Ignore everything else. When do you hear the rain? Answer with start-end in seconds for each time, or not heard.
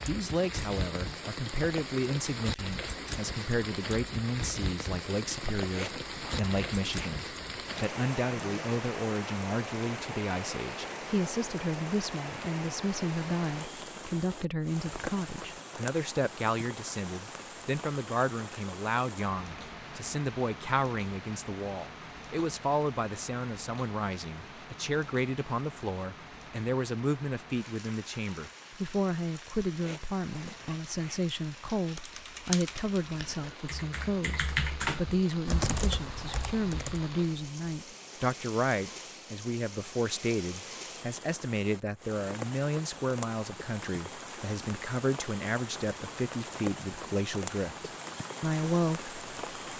0.0-49.7.